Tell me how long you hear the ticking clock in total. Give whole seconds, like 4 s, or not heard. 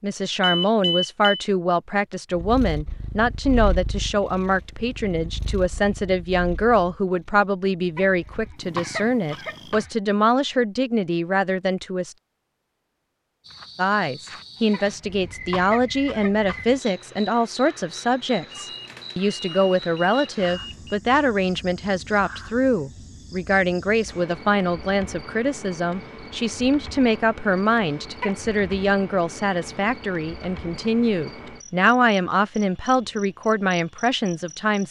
not heard.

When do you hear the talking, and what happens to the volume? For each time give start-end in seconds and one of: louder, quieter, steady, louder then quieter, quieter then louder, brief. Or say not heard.
0.0-12.2 steady
13.8-34.8 steady.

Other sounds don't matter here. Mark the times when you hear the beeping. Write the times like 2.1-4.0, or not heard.
0.4-1.4, 18.5-21.0.